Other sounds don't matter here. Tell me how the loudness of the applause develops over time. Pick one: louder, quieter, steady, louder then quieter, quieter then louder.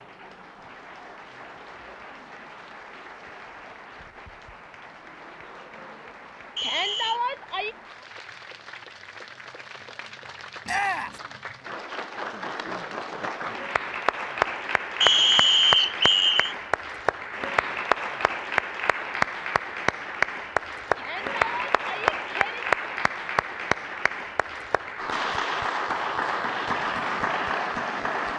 louder.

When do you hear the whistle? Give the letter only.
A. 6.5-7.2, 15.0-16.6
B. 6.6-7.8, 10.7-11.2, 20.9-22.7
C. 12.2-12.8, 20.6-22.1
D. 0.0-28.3
A.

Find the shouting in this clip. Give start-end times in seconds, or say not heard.
6.6-7.8, 10.7-11.2, 20.9-22.7.